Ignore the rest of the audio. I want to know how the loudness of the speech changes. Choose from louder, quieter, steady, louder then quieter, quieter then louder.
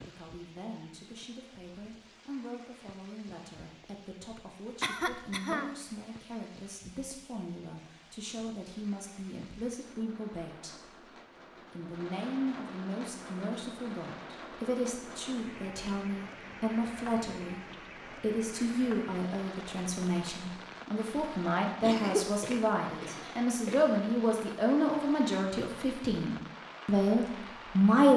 louder.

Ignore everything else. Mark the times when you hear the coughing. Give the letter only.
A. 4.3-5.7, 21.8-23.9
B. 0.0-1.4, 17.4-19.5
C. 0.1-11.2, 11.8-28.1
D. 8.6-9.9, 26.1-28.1
A.